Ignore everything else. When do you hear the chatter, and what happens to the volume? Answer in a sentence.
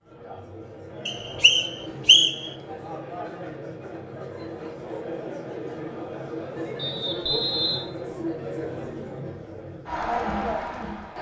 The chatter can be heard from 0.0 to 11.1 s, getting louder.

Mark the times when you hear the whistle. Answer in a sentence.
You can hear the whistle from 1.1 to 2.5 s and from 6.8 to 7.8 s.